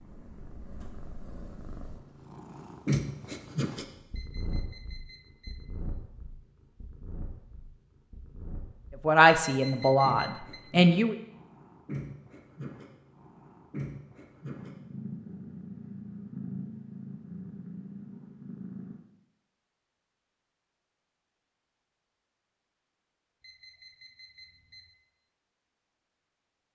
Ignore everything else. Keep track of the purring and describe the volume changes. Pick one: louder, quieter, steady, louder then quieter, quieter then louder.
quieter then louder.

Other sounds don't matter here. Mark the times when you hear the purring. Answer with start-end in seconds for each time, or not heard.
0.0-19.0.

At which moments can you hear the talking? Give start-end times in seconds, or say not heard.
9.1-11.2.